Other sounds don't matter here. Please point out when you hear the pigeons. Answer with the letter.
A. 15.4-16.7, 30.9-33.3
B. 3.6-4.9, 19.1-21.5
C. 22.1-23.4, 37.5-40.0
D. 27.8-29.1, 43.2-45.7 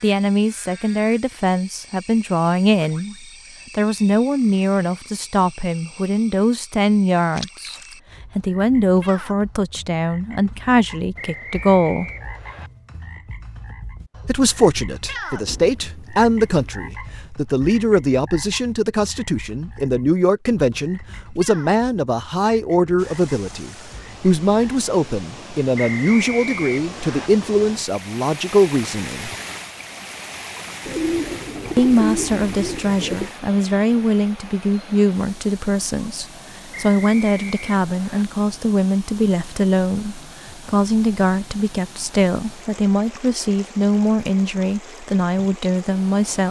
A.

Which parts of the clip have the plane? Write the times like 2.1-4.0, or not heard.
not heard.